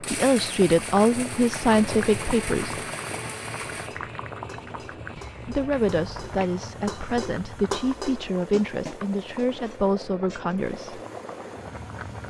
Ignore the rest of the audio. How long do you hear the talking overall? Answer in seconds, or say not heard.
8 s.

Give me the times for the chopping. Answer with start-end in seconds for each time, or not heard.
not heard.